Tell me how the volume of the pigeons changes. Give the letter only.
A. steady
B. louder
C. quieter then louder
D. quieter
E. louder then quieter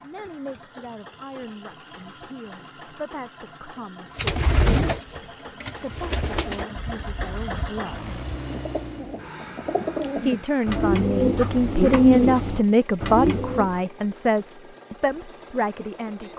C.